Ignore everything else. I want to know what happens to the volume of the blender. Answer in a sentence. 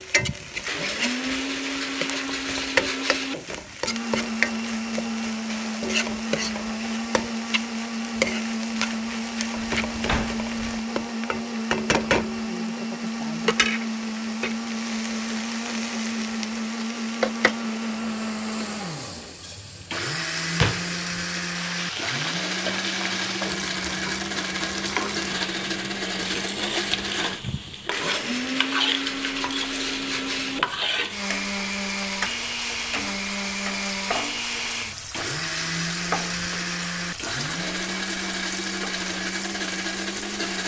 The volume of the blender stays about the same.